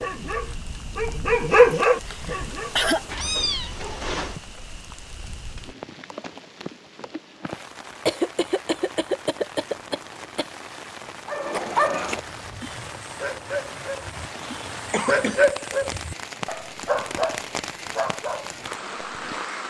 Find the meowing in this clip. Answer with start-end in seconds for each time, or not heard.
3.0-4.3.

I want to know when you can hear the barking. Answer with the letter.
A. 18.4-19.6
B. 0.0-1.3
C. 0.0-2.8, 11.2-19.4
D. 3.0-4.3
C.